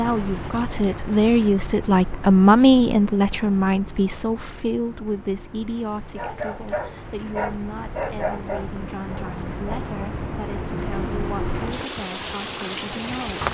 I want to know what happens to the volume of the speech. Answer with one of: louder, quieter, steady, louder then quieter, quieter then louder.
quieter.